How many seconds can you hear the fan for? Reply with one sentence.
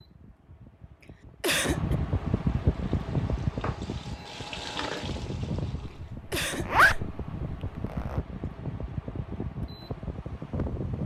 You can hear the fan for 11 seconds altogether.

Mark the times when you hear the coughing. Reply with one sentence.
The coughing can be heard from 1.4 to 1.9 s and from 6.3 to 7.0 s.